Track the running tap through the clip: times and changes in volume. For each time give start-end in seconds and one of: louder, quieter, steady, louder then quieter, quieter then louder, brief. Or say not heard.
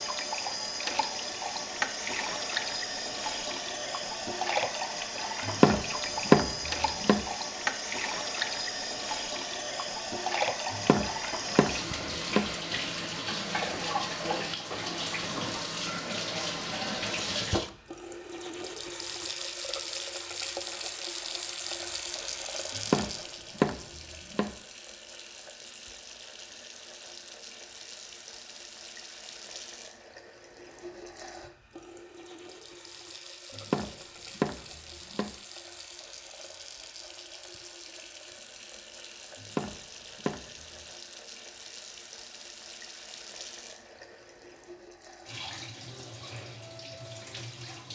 0.0-47.9 quieter.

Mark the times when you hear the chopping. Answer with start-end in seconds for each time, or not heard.
5.5-7.2, 10.7-12.5, 22.8-24.6, 33.5-35.4, 39.4-40.6.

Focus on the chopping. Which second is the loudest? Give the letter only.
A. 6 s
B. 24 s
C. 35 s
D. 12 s
A.